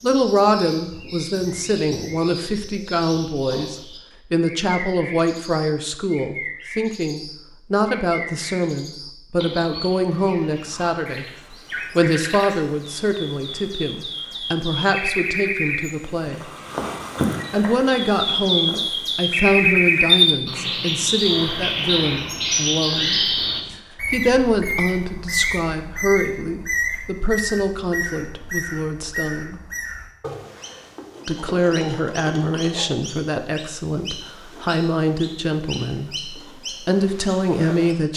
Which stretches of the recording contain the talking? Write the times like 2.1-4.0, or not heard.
0.0-11.2, 11.9-16.4, 17.5-29.6, 31.2-38.1.